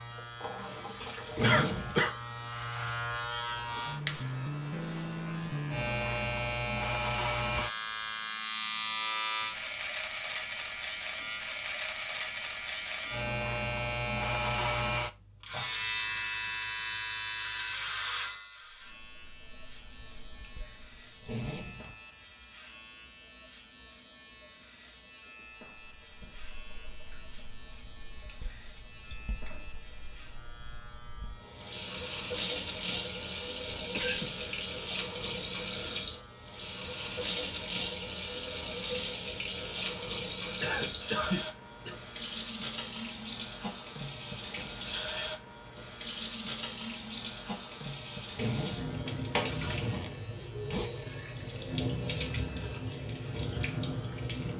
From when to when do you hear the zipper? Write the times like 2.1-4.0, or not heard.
1.3-2.0, 21.2-21.9, 48.3-50.9.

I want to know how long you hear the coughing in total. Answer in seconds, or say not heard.
3 s.